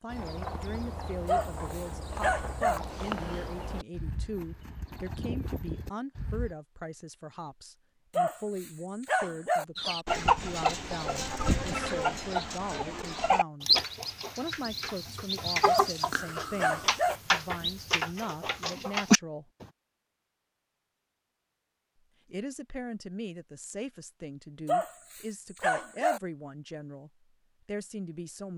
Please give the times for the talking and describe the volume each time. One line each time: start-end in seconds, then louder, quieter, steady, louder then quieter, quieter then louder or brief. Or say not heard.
0.0-19.5 steady
22.2-28.5 steady.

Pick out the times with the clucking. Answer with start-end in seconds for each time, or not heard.
9.8-19.6.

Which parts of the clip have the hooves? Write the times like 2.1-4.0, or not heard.
0.1-6.5.